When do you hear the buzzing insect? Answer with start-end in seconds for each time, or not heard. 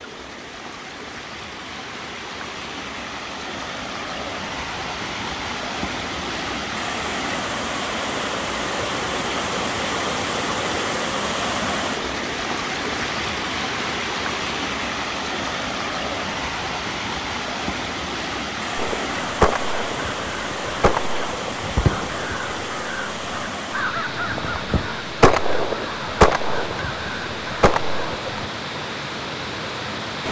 not heard.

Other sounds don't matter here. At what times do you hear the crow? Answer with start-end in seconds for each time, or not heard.
18.8-28.5.